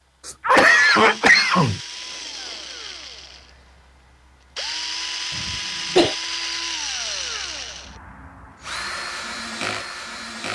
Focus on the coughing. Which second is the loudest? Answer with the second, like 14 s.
1 s.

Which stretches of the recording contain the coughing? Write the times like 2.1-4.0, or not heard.
0.2-1.8, 5.3-6.2.